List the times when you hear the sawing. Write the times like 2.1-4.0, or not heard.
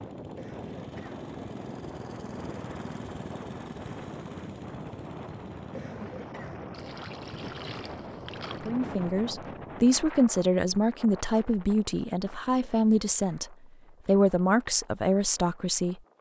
not heard.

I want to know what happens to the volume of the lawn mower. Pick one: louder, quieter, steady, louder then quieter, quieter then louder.
steady.